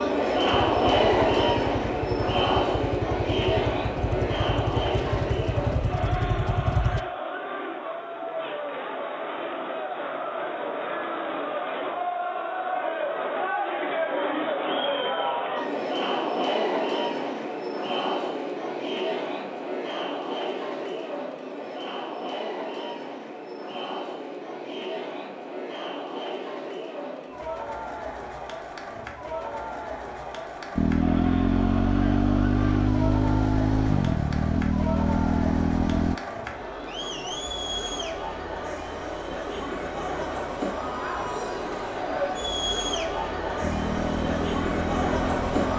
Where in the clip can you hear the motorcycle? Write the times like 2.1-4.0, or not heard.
0.0-7.0, 30.8-36.1, 43.6-45.7.